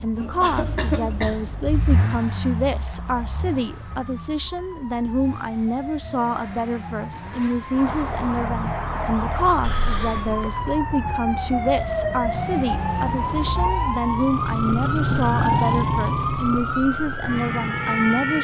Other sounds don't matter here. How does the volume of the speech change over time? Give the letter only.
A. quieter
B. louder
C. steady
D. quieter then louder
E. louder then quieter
C.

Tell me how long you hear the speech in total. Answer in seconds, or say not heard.
18 s.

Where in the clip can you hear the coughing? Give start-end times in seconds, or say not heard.
0.1-1.7, 9.6-10.5, 15.1-15.8.